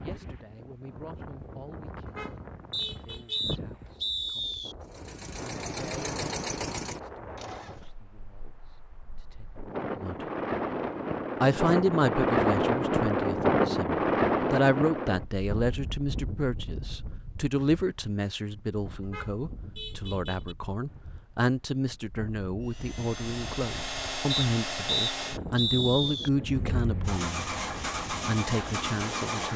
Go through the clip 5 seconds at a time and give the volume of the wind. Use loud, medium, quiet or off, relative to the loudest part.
quiet, quiet, loud, quiet, quiet, quiet.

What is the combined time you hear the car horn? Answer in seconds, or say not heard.
3 s.